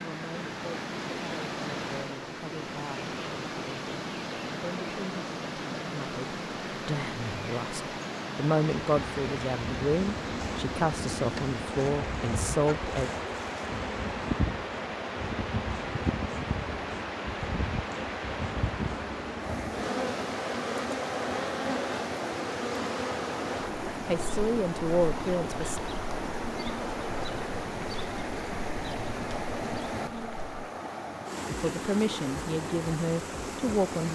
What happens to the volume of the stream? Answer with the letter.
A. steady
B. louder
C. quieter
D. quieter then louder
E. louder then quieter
A.